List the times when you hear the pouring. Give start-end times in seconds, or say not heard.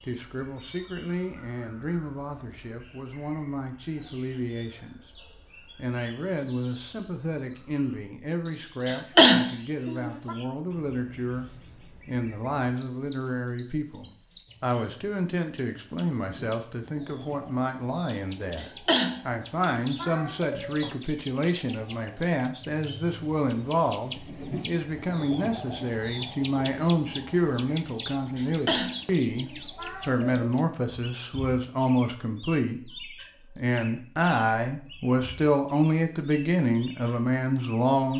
not heard.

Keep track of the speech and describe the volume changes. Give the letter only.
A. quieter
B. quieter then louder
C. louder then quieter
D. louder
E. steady
D.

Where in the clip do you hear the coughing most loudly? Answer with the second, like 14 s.
9 s.